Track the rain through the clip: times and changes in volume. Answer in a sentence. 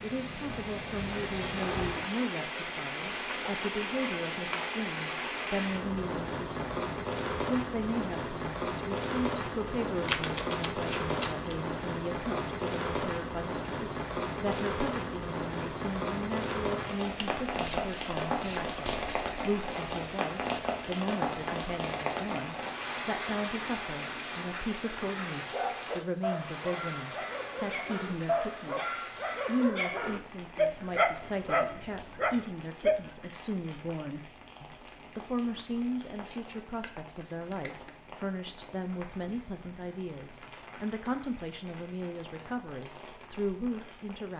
The rain can be heard from 0.0 to 44.3 s, getting quieter.